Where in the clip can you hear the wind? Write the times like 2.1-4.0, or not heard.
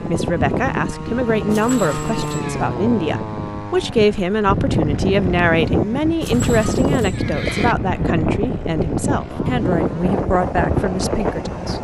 0.0-11.7.